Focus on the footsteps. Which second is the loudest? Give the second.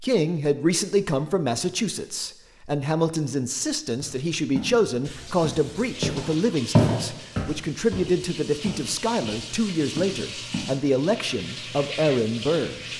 7 s.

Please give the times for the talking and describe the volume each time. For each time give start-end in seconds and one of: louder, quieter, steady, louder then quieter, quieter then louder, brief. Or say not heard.
0.0-12.8 steady.